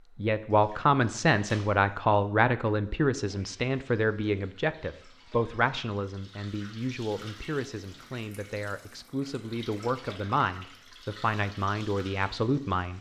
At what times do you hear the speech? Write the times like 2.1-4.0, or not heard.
0.1-12.9.